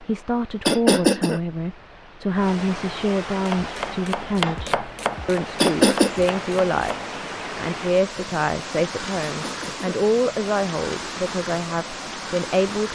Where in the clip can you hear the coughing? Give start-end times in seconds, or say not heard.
0.7-1.4, 5.6-6.2, 9.2-10.1.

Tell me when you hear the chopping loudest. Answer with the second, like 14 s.
5 s.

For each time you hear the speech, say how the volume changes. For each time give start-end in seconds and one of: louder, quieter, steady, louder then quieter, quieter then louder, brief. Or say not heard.
0.0-12.9 steady.